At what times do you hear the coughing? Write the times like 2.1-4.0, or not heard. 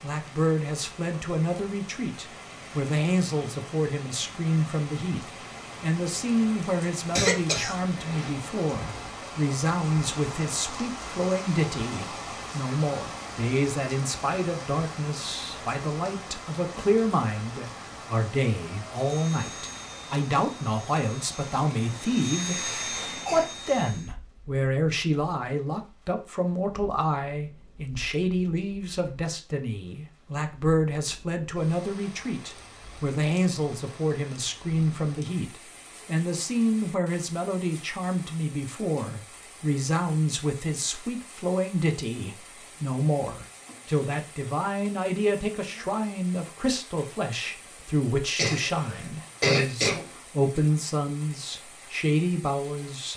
7.2-8.3, 22.9-23.5, 48.4-50.0.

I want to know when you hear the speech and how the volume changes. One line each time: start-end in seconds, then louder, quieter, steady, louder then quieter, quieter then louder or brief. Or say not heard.
0.0-53.1 steady.